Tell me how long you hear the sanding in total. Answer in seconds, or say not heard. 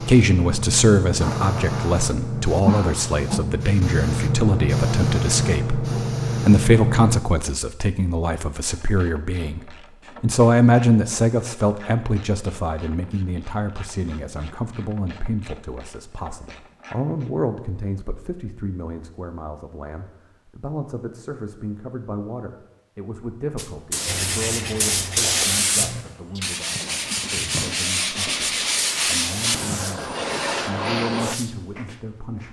7 s.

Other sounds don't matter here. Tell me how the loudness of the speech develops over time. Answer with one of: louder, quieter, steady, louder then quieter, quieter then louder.
quieter.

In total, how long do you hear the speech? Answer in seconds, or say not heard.
32 s.